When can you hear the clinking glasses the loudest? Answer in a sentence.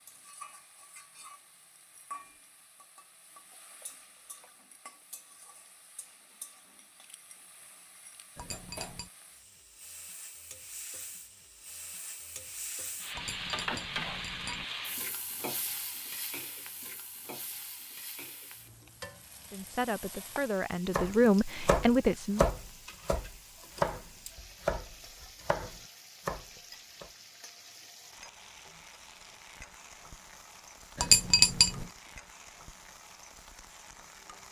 The loudest moment of the clinking glasses is at 31 seconds.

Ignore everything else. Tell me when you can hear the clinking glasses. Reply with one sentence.
The clinking glasses can be heard from 8.3 to 9.1 s, from 13.2 to 14.7 s and from 30.9 to 31.9 s.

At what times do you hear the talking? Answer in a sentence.
The talking can be heard from 19.5 to 22.5 s.